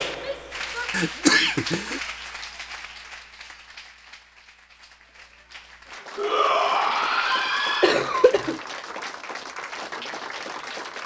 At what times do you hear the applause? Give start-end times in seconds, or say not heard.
0.0-11.0.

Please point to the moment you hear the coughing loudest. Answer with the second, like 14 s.
1 s.